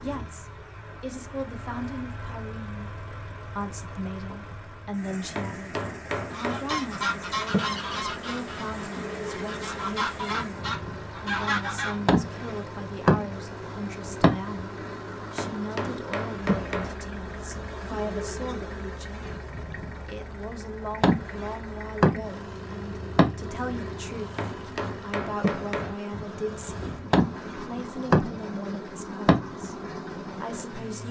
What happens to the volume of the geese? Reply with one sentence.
The loudness of the geese goes down, then up.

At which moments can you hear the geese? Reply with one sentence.
You can hear the geese from 6.3 to 12.0 s.